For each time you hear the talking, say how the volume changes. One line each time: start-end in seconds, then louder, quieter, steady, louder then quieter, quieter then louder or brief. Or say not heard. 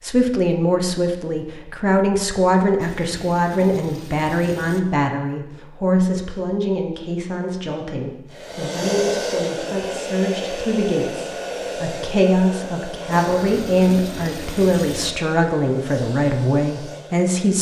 0.0-17.5 quieter then louder.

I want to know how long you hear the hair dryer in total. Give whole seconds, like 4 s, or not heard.
9 s.